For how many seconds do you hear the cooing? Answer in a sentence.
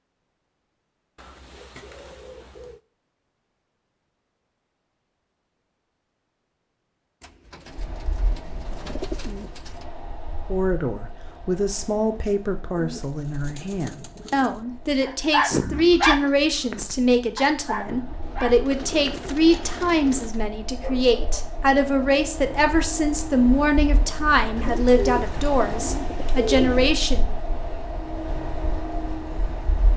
You can hear the cooing for 11 seconds altogether.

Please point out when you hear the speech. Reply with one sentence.
You can hear the speech from 10.5 to 27.3 s.